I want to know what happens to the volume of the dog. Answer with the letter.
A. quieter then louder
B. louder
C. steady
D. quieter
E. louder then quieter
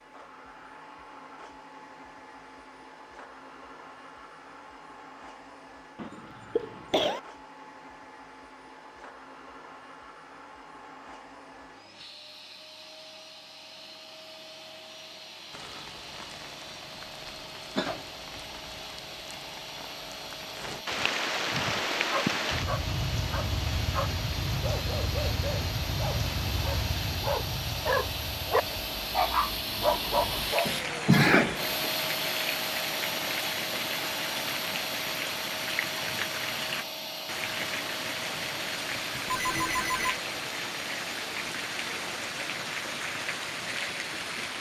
B.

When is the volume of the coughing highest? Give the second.
31 s.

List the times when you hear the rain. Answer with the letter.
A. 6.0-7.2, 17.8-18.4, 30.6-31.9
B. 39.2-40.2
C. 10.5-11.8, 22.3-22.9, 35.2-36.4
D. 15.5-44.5
D.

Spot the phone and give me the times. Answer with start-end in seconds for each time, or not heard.
39.2-40.2.